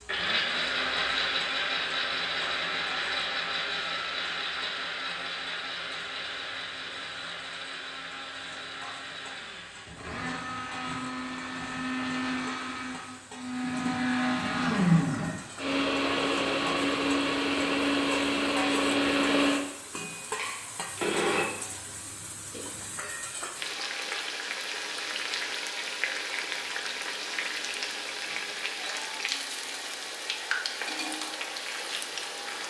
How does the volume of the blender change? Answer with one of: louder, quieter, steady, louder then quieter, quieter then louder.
quieter then louder.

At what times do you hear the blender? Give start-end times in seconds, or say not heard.
0.1-21.4.